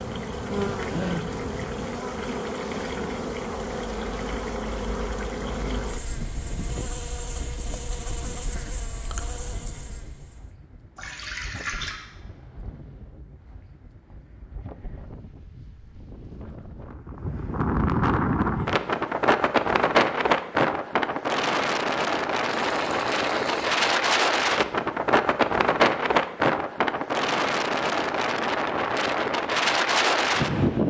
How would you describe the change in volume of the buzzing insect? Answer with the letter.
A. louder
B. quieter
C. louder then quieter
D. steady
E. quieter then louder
B.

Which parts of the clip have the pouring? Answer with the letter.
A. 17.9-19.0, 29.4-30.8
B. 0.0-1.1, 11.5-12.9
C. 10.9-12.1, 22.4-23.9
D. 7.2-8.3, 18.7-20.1
C.